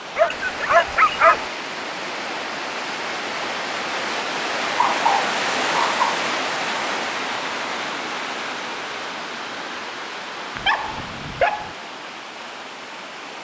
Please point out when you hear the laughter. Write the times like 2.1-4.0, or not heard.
not heard.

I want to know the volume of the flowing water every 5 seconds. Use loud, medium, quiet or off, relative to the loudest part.
loud, loud, medium.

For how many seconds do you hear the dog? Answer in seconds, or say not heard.
4 s.